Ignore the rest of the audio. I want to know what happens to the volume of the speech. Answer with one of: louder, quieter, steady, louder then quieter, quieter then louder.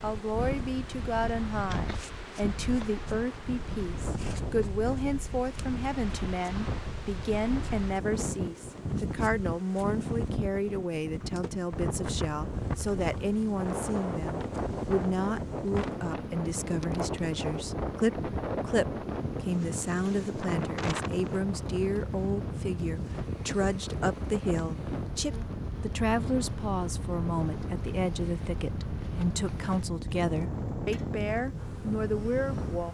steady.